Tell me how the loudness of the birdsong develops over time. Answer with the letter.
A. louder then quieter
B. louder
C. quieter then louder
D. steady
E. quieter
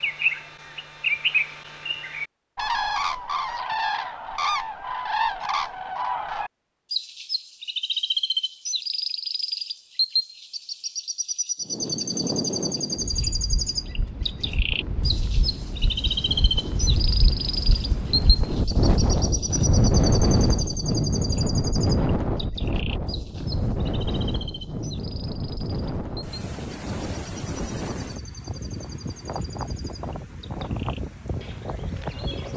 E.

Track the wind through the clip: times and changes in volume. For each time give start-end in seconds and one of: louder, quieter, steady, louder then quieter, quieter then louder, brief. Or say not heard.
11.6-32.5 louder then quieter.